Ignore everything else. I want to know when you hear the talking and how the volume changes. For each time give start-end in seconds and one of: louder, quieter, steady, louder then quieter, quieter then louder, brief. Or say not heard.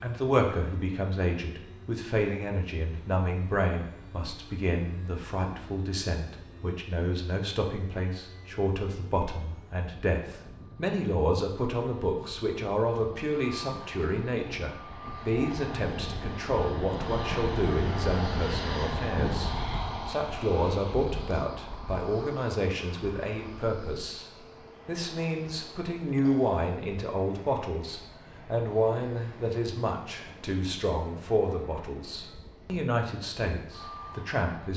0.0-34.7 steady.